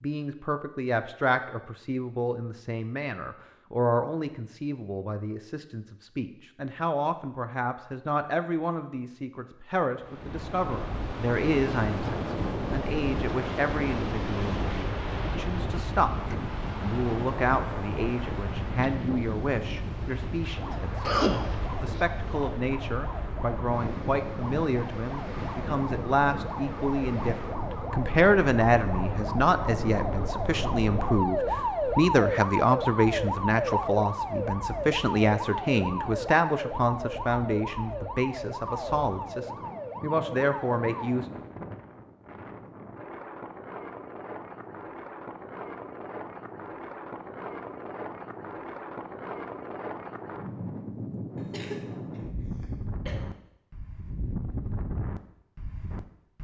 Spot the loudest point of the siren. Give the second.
32 s.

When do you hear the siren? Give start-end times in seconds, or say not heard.
20.5-41.2.